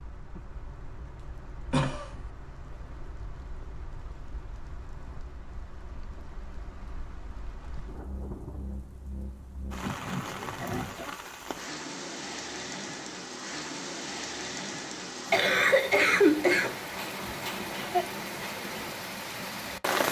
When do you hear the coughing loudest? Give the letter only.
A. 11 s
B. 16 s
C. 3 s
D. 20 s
B.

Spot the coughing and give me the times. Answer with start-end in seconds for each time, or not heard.
1.7-2.2, 9.8-11.2, 15.3-18.1.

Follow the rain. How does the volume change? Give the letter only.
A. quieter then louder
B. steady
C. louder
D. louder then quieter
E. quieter
C.